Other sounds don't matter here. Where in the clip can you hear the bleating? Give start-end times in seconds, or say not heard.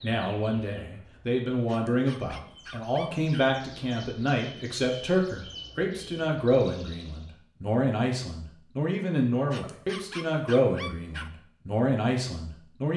not heard.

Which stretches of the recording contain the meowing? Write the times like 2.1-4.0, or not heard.
not heard.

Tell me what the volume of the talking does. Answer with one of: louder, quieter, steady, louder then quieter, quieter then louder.
steady.